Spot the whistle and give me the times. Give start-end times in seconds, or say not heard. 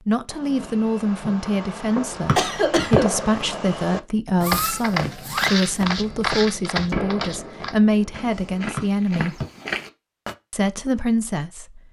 2.2-3.0, 8.8-9.4.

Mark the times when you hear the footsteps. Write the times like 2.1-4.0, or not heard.
4.4-10.3.